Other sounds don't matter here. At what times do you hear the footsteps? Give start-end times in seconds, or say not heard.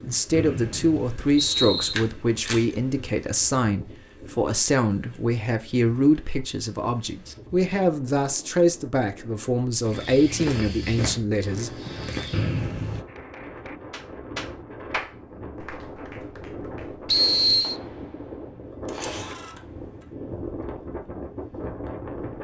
9.8-12.7.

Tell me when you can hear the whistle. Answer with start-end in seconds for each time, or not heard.
0.3-1.9, 12.3-13.1, 17.1-17.8.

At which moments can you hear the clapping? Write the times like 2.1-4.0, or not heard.
13.1-20.0.